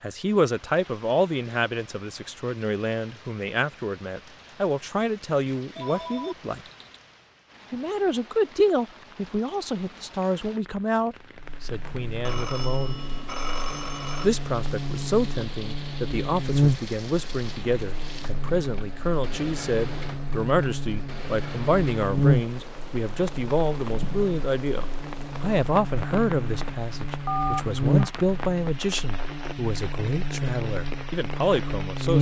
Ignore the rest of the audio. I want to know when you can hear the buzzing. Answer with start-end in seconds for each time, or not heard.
11.3-32.1.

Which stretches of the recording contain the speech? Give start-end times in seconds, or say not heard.
0.0-6.6, 7.7-13.0, 14.2-32.1.